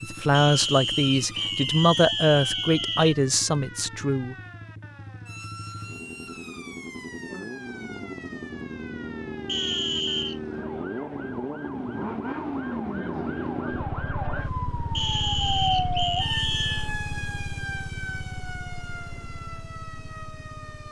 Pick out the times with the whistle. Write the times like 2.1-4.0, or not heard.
0.3-3.1, 9.4-10.4, 14.9-16.9.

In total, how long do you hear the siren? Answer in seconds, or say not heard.
21 s.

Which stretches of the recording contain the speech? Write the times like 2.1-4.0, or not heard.
0.0-4.3.